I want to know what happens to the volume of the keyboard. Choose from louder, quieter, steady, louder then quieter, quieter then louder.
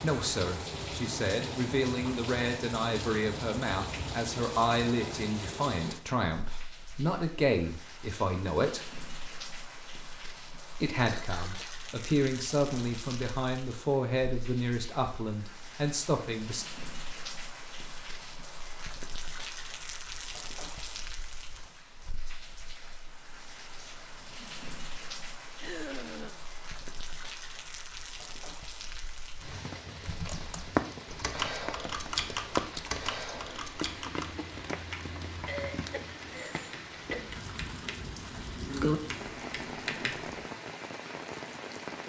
quieter then louder.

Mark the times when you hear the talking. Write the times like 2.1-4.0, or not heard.
0.0-8.9, 10.8-16.6.